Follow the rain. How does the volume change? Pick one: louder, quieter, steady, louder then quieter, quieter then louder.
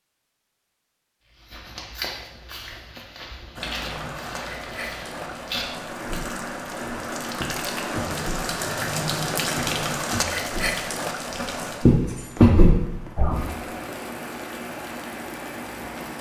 louder then quieter.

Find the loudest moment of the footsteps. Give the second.
13 s.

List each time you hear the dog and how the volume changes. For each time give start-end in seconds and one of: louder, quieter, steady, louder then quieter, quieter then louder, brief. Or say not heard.
not heard.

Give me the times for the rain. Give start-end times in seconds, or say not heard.
3.5-16.1.